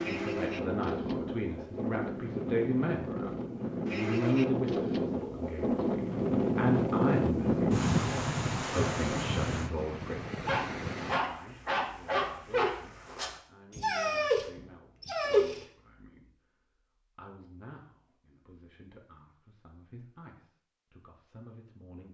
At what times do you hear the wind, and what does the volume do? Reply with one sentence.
You can hear the wind from 0.0 to 11.2 s, getting louder then quieter.